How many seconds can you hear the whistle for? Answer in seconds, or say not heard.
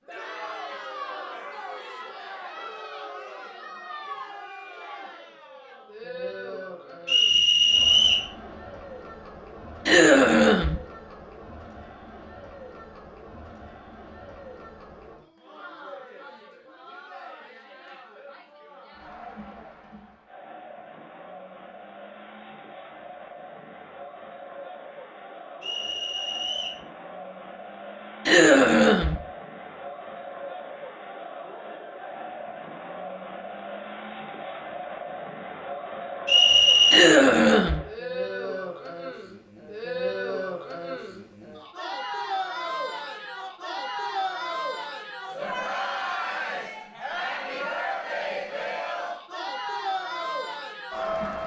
3 s.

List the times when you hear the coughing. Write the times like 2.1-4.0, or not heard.
9.8-10.8, 28.2-29.2, 36.9-37.8.